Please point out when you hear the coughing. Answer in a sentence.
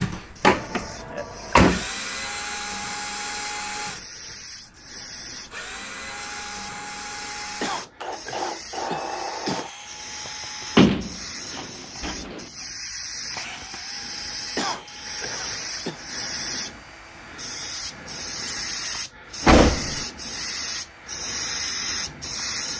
You can hear the coughing from 7.6 to 9.7 s and from 14.6 to 16.0 s.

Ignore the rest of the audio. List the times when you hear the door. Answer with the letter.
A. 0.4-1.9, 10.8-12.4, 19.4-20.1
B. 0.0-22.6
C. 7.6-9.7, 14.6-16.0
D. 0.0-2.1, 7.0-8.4
A.